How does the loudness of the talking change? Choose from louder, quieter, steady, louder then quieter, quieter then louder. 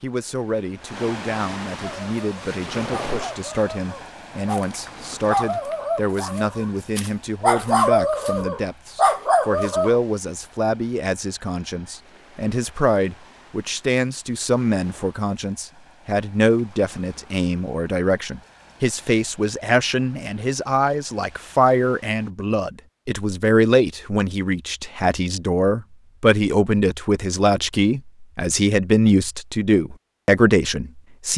louder.